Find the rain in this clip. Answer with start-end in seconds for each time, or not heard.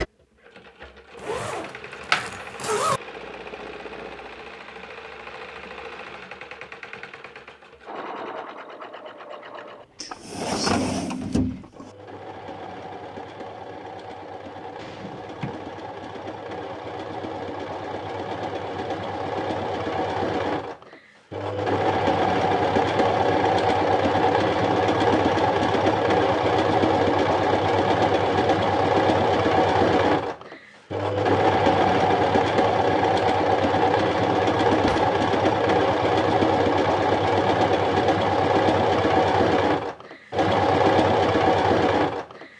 not heard.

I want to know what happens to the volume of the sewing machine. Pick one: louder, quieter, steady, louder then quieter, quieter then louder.
louder.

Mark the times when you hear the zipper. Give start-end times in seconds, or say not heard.
1.1-3.0.